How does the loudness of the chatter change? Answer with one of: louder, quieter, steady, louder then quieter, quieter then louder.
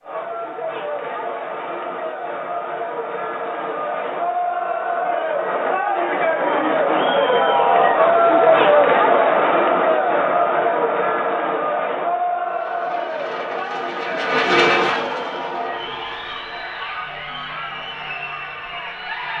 louder then quieter.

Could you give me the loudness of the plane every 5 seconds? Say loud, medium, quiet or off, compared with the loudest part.
off, off, loud, medium.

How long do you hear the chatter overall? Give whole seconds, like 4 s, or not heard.
19 s.